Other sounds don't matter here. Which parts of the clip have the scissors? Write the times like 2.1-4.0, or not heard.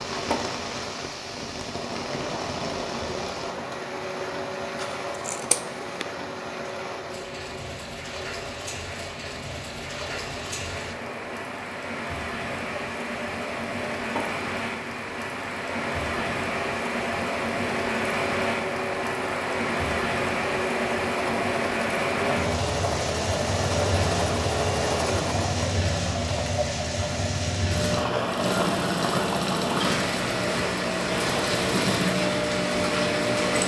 4.8-6.0.